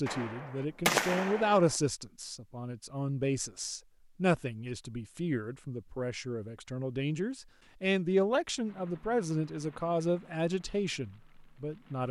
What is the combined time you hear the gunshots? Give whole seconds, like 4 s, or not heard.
2 s.